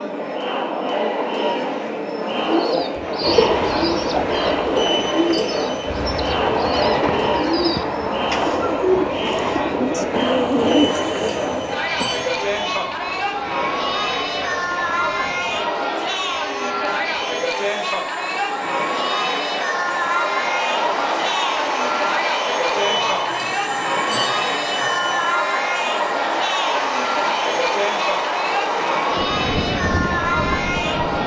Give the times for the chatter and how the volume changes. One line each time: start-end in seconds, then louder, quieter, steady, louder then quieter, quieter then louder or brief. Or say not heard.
0.0-31.2 steady.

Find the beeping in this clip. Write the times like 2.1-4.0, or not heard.
4.8-6.0, 10.7-12.8, 22.8-25.4.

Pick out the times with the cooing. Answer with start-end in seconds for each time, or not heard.
2.4-12.1.